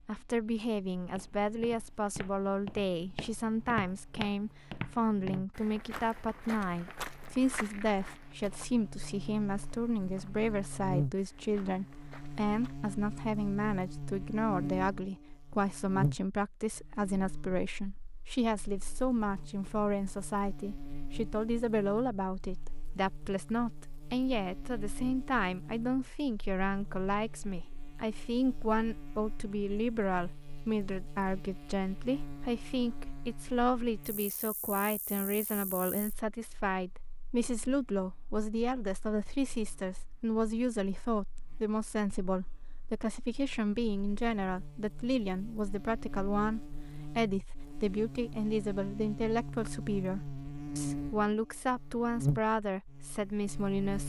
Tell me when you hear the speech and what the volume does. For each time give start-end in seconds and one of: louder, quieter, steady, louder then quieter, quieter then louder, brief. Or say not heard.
0.1-54.0 steady.